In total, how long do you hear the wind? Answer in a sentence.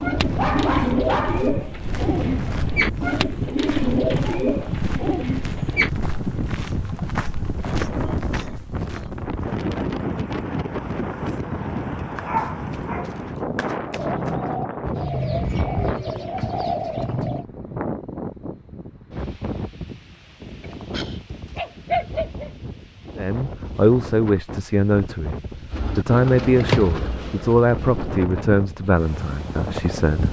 You can hear the wind for 30 seconds altogether.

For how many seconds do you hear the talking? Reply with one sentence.
You can hear the talking for 7 seconds altogether.